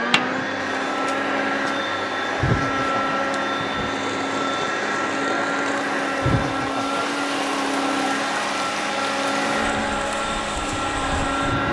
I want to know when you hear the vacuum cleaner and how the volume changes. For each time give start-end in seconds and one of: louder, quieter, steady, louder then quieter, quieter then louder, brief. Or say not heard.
0.0-11.6 steady.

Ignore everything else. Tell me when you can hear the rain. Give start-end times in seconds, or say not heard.
0.0-11.6.